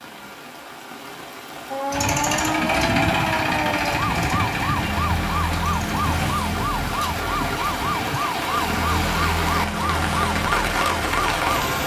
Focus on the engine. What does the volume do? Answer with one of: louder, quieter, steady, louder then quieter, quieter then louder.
quieter.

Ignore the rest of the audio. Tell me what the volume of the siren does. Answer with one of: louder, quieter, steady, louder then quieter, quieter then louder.
steady.